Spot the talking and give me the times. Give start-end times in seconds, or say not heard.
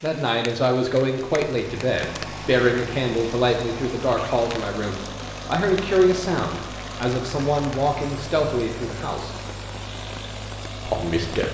0.0-9.3, 10.8-11.5.